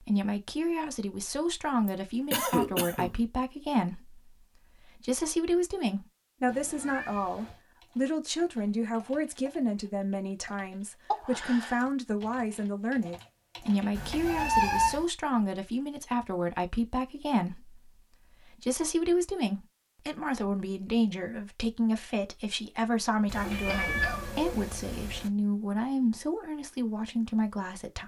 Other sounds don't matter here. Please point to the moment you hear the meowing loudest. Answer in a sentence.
The loudest moment of the meowing is at 15 seconds.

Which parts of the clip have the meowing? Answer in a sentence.
The meowing can be heard from 6.5 to 7.6 s, from 13.9 to 15.1 s and from 23.2 to 25.3 s.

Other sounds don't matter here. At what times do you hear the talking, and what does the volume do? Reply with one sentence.
The talking can be heard from 0.0 to 28.0 s, at a steady volume.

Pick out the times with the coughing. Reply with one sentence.
The coughing can be heard from 1.9 to 3.1 s, from 11.1 to 11.8 s and from 23.6 to 24.2 s.